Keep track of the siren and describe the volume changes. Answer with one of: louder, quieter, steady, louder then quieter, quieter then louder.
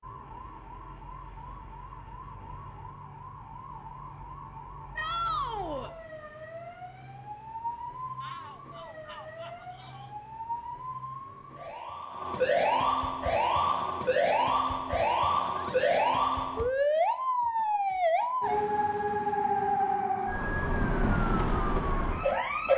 louder.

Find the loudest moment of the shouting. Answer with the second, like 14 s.
5 s.